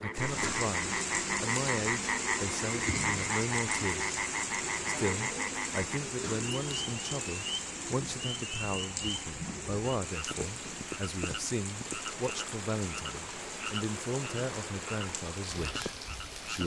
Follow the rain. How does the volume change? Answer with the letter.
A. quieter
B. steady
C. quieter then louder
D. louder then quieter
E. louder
A.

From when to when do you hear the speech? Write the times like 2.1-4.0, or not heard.
0.0-4.2, 4.8-16.6.